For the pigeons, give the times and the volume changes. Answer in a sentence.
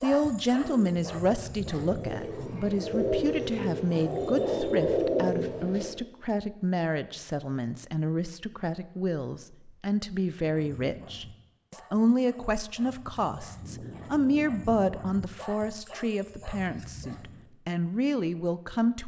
You can hear the pigeons from 0.6 to 5.9 s, getting louder.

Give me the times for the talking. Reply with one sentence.
You can hear the talking from 0.0 to 19.0 s.